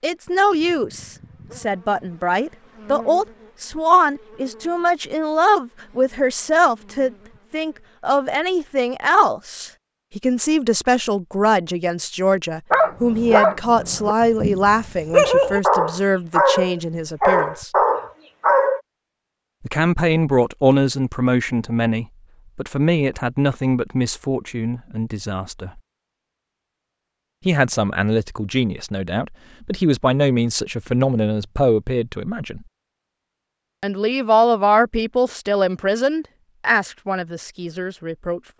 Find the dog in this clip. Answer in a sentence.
You can hear the dog from 12.7 to 18.8 s.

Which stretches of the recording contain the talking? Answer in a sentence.
The talking can be heard from 0.0 to 17.7 s, from 19.6 to 25.8 s, from 27.4 to 32.6 s and from 33.8 to 38.4 s.